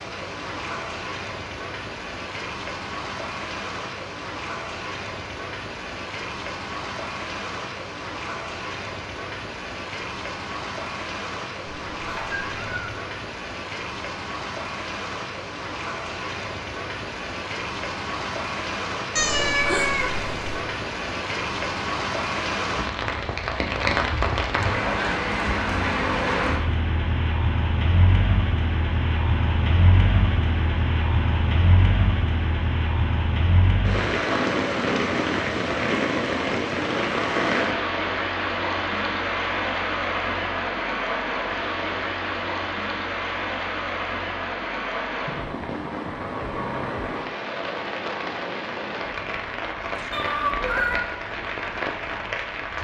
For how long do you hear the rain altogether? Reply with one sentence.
You can hear the rain for 53 seconds altogether.